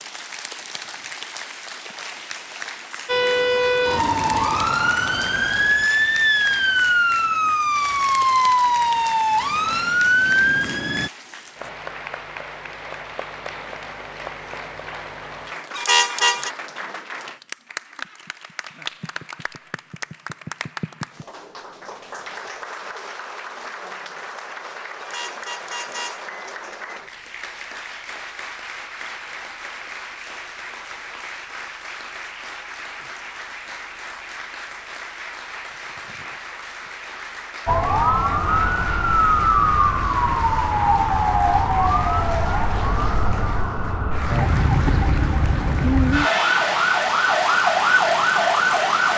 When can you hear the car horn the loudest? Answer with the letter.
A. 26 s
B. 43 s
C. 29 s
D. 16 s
D.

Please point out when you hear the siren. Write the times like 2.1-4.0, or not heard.
3.0-11.1, 37.6-49.1.